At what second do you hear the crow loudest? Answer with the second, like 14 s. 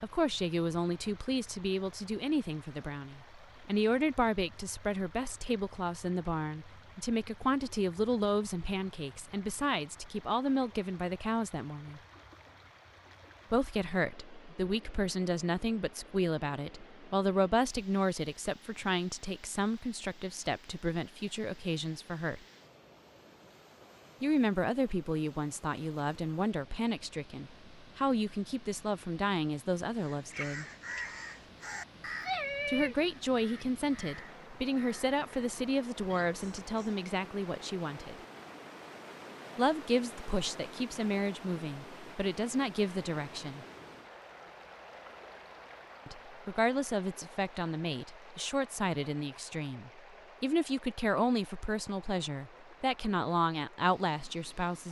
32 s.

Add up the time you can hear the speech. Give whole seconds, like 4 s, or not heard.
46 s.